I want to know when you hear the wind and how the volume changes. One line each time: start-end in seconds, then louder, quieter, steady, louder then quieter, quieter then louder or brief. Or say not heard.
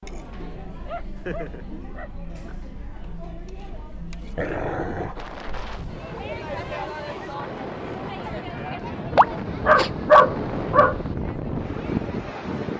5.2-12.7 louder.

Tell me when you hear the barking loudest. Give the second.
10 s.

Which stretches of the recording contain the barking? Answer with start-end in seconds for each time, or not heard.
0.7-2.5, 4.3-5.2, 9.2-11.2.